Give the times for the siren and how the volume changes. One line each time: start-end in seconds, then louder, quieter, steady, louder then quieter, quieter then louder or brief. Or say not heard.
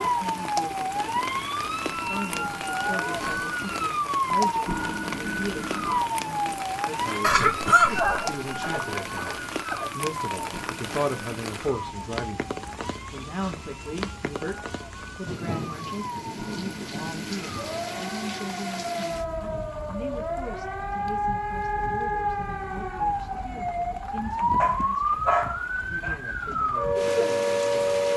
0.0-28.1 quieter then louder.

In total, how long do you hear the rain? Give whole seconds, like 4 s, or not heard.
28 s.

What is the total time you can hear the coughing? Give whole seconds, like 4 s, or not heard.
2 s.